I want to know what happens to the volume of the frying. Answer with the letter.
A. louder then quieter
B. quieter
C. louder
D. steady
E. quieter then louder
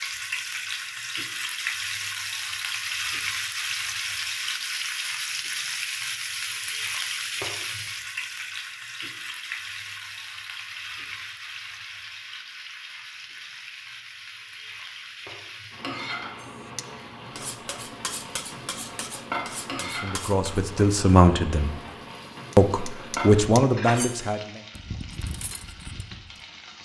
B.